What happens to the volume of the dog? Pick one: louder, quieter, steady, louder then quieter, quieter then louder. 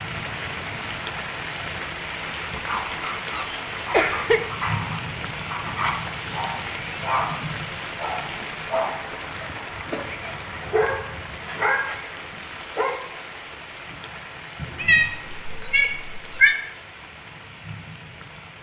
louder.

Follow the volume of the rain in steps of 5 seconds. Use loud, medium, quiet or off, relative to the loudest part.
loud, loud, medium, medium.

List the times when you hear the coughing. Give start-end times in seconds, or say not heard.
3.9-4.4, 9.4-10.1, 14.6-15.4.